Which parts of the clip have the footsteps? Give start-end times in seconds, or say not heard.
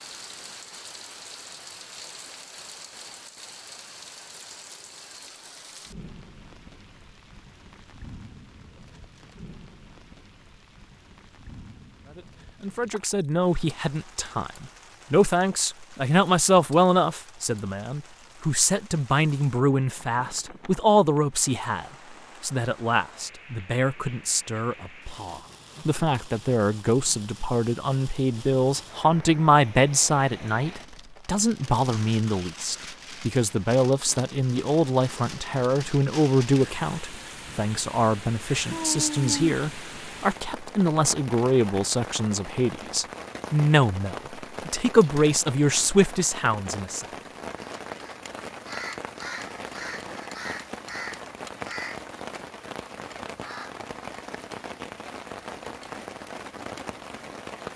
not heard.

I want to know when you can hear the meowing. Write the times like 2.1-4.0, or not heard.
38.7-39.5.